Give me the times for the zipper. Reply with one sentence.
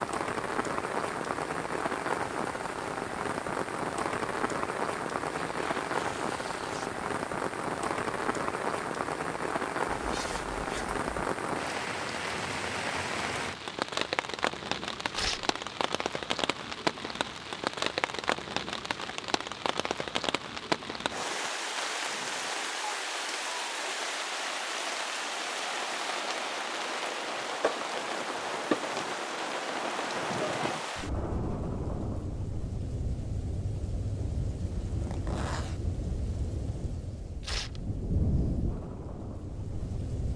You can hear the zipper from 9.8 to 11.1 s and from 34.8 to 35.8 s.